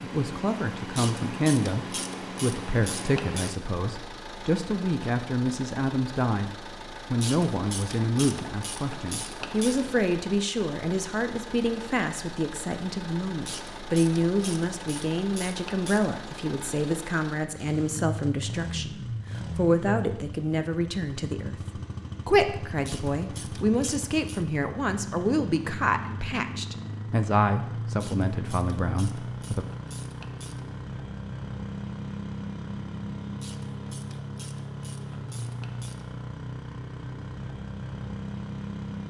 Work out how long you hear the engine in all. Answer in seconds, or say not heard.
39 s.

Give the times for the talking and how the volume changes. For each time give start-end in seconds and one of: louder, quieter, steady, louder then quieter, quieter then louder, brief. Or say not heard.
0.0-29.6 steady.